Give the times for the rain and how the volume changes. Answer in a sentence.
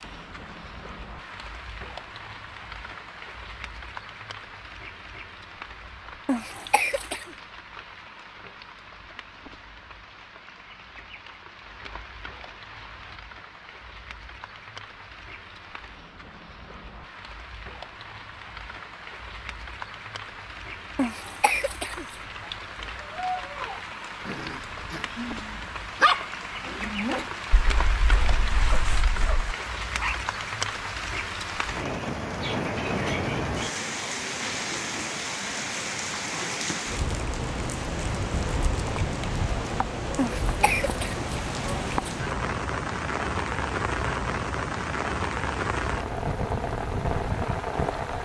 The rain can be heard from 0.0 to 48.1 s, getting louder.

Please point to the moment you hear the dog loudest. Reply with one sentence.
The loudest moment of the dog is at 26 seconds.